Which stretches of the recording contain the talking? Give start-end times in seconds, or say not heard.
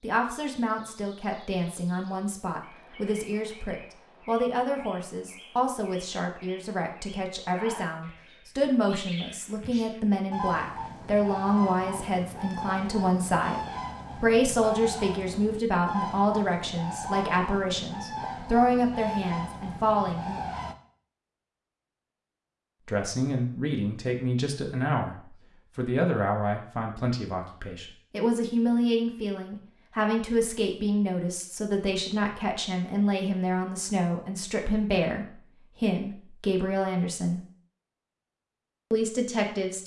0.0-20.4, 22.9-37.4, 38.9-39.8.